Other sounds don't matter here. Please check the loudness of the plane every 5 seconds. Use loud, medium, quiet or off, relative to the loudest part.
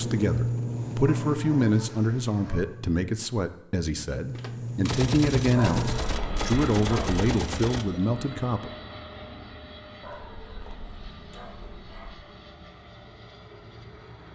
loud, loud, quiet.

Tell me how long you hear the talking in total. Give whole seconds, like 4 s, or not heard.
9 s.